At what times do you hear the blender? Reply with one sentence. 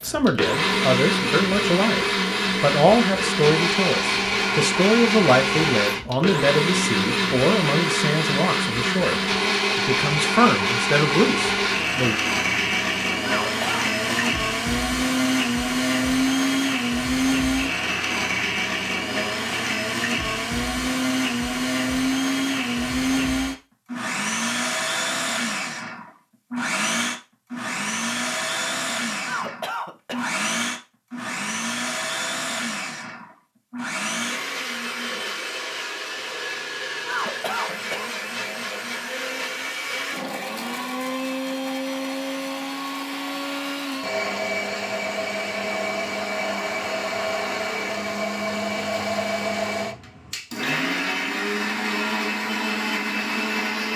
The blender can be heard from 0.0 to 53.9 s.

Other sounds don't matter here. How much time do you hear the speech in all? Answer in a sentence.
The speech can be heard for 12 seconds in total.